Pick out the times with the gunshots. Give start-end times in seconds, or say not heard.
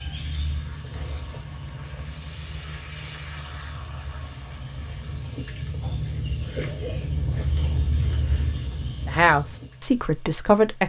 not heard.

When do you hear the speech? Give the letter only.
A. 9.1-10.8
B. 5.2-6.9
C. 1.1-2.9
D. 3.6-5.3
A.